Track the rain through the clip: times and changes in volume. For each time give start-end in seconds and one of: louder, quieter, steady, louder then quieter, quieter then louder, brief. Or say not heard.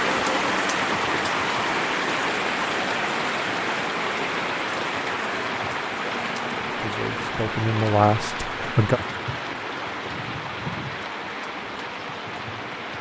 0.0-12.9 quieter.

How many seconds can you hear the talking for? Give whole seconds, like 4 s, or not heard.
2 s.